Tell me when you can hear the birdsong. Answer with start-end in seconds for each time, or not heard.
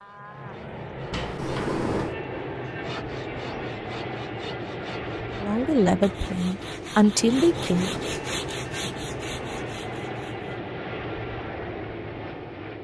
not heard.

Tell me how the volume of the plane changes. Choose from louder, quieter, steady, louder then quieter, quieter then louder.
steady.